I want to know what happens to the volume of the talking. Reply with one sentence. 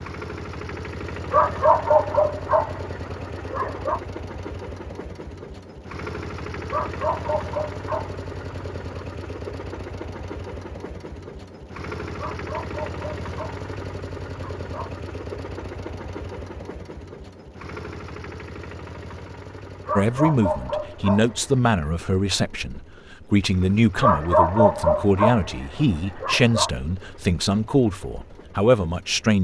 The loudness of the talking stays about the same.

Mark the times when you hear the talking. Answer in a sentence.
The talking can be heard from 19.9 to 29.3 s.